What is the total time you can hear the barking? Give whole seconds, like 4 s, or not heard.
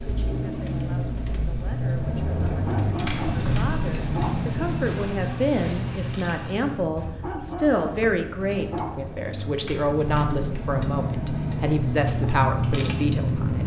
4 s.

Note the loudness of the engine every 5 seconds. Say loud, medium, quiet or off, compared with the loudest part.
loud, medium, loud.